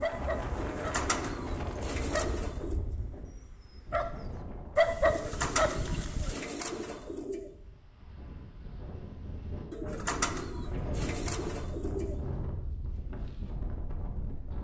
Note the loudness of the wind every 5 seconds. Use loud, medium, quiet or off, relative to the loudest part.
loud, medium, loud.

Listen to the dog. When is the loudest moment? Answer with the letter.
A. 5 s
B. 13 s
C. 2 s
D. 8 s
A.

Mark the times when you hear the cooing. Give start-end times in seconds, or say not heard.
0.6-2.8, 5.0-7.5, 9.7-12.2.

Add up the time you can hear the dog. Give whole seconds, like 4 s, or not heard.
6 s.